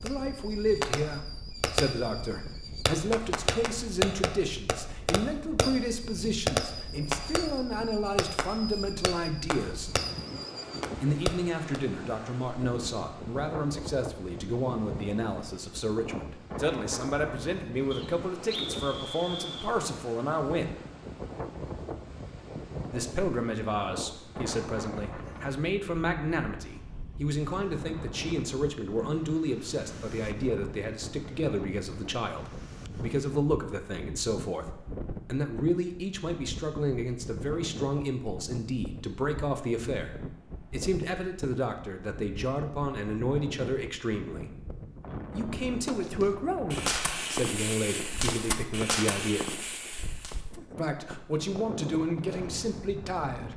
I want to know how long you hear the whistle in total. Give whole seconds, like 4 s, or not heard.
2 s.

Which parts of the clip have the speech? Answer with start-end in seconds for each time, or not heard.
0.0-9.9, 11.0-20.8, 22.9-44.5, 45.3-49.6, 50.8-53.5.